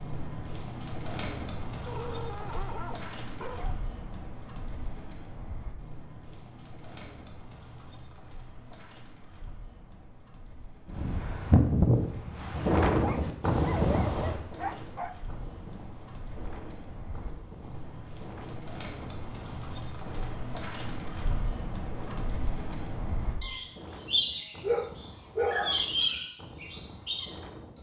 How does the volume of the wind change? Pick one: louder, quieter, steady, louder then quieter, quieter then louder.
quieter.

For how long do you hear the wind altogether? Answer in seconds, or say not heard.
17 s.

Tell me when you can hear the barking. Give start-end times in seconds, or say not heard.
1.9-3.8, 13.0-15.2, 24.6-25.8.